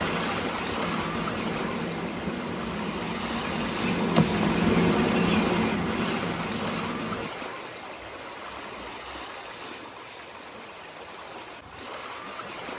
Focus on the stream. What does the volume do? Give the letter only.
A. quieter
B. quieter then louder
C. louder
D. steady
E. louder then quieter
A.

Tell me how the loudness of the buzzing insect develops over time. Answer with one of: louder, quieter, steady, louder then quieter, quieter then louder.
louder then quieter.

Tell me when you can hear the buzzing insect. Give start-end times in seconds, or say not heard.
0.0-7.3.